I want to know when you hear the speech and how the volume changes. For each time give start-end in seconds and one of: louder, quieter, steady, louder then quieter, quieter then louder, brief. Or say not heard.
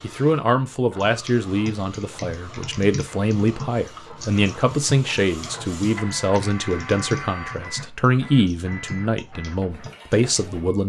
0.0-10.8 steady.